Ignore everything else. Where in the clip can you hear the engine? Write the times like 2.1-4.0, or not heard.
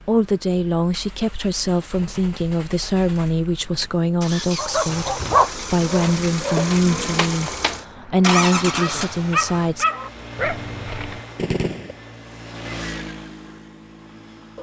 0.0-14.5.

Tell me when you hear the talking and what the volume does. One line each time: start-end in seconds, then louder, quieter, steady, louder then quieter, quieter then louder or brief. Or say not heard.
0.1-9.8 steady.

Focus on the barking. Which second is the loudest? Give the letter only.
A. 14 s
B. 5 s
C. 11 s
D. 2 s
B.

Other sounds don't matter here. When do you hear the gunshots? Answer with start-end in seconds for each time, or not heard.
11.3-11.9.